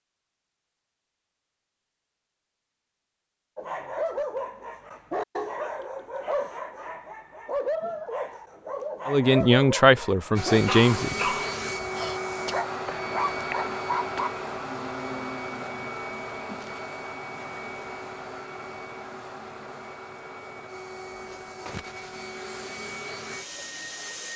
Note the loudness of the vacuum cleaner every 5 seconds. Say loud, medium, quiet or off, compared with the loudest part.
off, off, loud, medium, medium.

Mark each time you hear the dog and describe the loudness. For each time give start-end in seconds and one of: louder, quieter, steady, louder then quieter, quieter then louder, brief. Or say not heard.
3.5-14.3 steady.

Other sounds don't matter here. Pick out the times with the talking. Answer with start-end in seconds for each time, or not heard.
9.1-11.2.